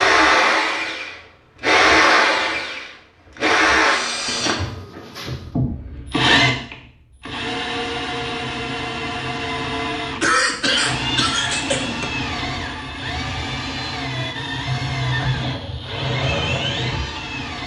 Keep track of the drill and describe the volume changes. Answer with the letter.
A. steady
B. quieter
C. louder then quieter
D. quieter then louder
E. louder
B.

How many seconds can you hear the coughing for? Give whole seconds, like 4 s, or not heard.
3 s.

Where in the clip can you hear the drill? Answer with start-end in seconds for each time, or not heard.
0.0-17.6.